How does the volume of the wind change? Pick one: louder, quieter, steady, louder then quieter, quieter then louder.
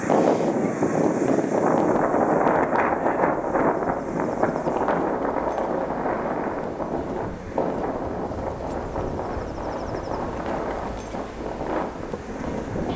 quieter.